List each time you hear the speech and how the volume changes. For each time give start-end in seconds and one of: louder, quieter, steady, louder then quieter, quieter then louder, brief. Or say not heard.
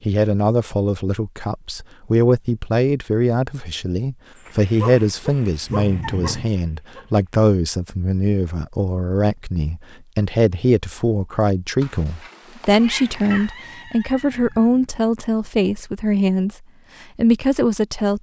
0.1-16.6 steady
17.1-18.1 brief.